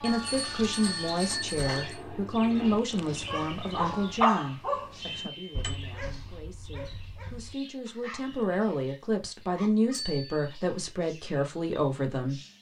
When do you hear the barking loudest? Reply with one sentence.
The volume of the barking peaks at 4 seconds.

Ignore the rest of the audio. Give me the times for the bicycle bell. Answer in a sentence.
The bicycle bell can be heard from 0.1 to 2.0 s, from 5.2 to 5.8 s and from 9.9 to 10.4 s.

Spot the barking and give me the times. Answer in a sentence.
You can hear the barking from 2.5 to 10.0 s.